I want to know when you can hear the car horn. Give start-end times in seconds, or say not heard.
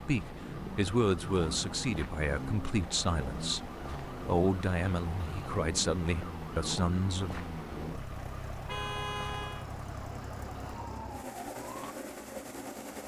8.5-9.7.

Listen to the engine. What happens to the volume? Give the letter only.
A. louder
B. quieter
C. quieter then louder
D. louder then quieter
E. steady
E.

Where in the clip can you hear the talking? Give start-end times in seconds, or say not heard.
0.0-7.3.